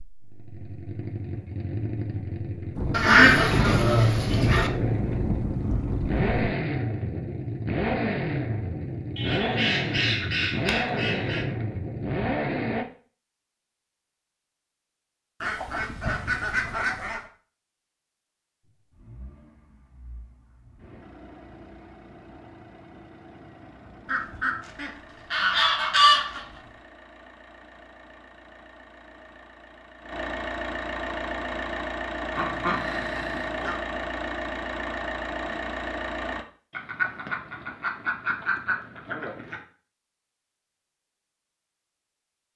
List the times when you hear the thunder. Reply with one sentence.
You can hear the thunder from 2.8 to 6.5 s.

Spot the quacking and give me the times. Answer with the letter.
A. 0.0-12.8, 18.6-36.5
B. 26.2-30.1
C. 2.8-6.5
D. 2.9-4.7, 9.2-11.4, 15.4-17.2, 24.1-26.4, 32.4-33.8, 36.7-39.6
D.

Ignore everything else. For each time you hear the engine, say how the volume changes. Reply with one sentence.
You can hear the engine from 0.0 to 12.8 s, getting louder; and from 18.6 to 36.5 s, getting louder.